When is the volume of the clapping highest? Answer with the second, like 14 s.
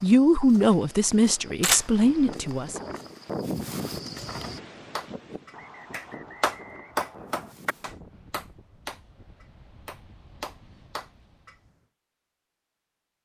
7 s.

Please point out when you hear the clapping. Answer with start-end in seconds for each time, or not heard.
5.0-11.6.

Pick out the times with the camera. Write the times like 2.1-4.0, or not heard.
1.6-2.4.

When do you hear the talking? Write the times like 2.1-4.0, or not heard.
0.0-2.8.